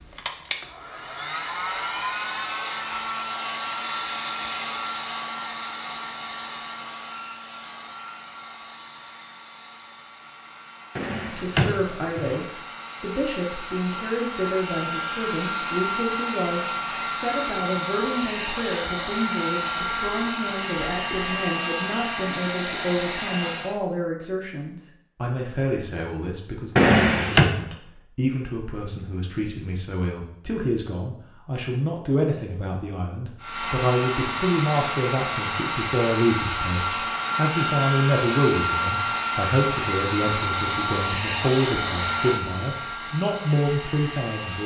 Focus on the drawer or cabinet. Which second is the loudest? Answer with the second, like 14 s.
27 s.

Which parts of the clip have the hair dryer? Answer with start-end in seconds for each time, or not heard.
0.0-23.8, 33.4-44.6.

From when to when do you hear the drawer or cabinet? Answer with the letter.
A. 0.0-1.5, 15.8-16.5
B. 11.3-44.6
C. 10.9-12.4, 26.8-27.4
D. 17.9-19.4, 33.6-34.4
C.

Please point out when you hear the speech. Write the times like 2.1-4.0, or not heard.
11.3-44.6.